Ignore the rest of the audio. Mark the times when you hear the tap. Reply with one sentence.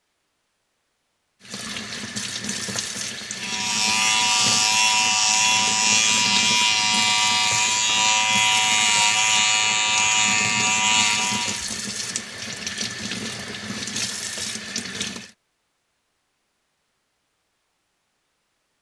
The tap can be heard from 1.4 to 15.3 s.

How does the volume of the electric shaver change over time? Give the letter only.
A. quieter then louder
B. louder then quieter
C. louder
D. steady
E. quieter
D.